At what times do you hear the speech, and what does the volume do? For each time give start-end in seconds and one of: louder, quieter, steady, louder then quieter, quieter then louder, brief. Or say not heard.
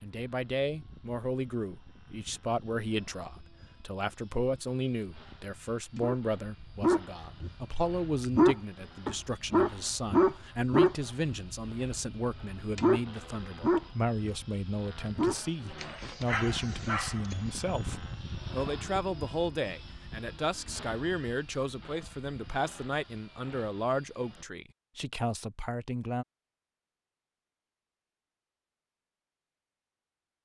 0.0-26.2 steady.